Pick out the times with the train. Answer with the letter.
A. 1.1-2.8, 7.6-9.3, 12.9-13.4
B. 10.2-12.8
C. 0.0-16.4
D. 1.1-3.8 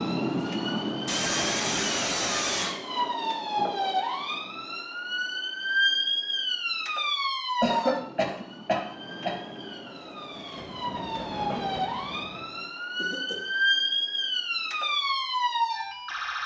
B.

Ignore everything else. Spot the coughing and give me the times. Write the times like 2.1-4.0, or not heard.
1.1-2.8, 7.6-9.3, 12.9-13.4.